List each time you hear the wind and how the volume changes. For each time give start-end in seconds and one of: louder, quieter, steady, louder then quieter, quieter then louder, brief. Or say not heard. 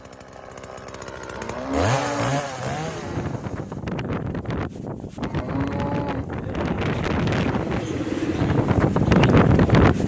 2.5-10.0 louder.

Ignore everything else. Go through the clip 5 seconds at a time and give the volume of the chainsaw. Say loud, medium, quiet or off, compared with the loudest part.
loud, off.